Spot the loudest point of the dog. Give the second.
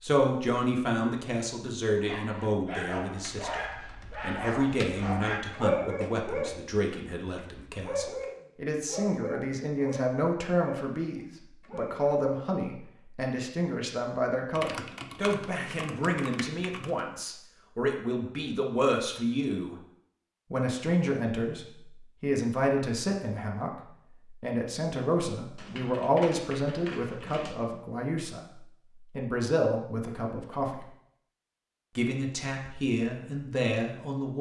6 s.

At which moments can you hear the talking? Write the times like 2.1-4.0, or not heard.
0.0-19.8, 20.5-30.9, 31.9-34.3.